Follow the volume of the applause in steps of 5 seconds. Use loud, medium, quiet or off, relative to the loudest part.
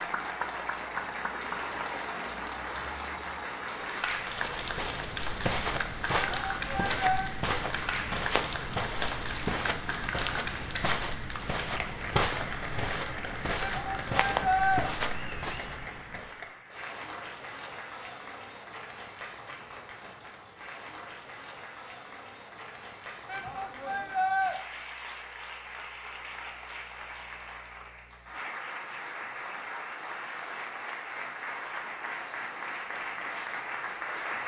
loud, loud, loud, medium, medium, medium, loud.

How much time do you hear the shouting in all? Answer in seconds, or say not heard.
4 s.